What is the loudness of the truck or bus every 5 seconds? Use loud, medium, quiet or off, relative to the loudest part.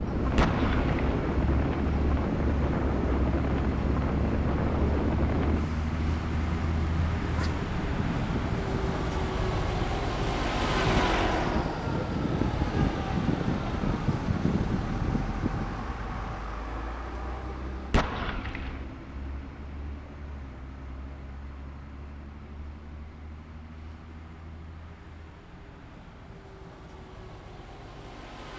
loud, loud, loud, medium, quiet, quiet.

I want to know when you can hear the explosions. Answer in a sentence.
You can hear the explosions from 0.3 to 1.1 s and from 17.9 to 18.9 s.